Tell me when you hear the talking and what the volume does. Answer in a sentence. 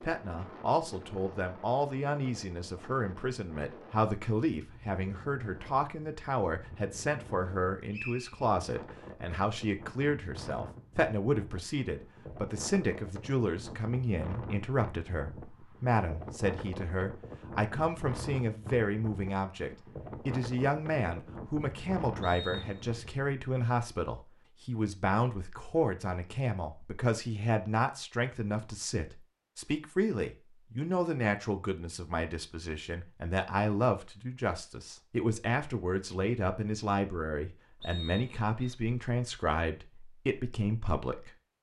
The talking can be heard from 0.0 to 41.3 s, at a steady volume.